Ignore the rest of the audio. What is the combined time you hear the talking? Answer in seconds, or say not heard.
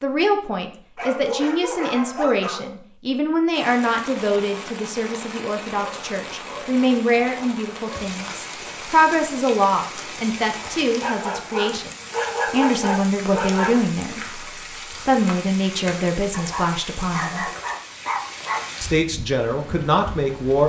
19 s.